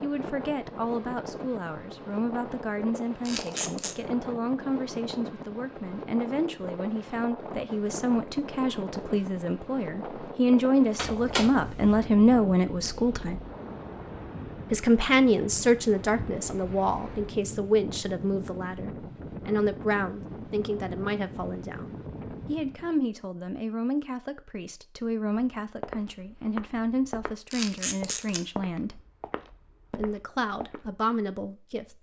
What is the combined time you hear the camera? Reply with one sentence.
You can hear the camera for 3 seconds altogether.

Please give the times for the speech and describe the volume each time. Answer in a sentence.
You can hear the speech from 0.0 to 13.3 s, getting louder; from 14.7 to 29.0 s, getting quieter; and briefly from 29.9 to 31.9 s.